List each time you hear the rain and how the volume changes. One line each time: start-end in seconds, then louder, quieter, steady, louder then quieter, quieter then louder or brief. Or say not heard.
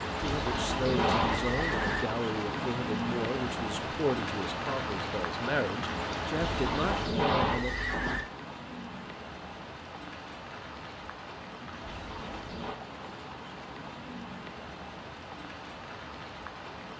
0.0-16.9 quieter.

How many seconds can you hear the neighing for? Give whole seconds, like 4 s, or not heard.
5 s.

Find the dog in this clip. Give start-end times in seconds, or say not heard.
not heard.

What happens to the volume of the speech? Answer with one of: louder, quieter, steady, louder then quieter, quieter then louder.
steady.